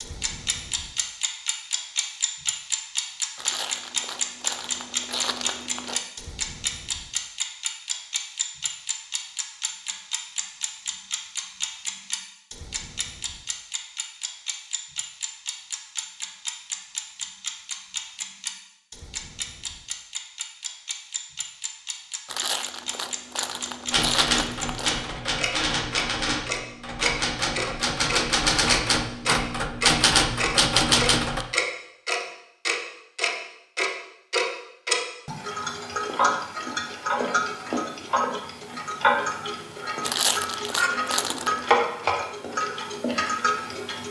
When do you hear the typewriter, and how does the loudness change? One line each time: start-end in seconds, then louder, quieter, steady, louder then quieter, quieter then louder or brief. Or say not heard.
23.9-31.4 louder.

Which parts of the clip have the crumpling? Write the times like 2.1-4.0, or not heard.
3.4-6.0, 22.2-24.9, 40.0-41.7.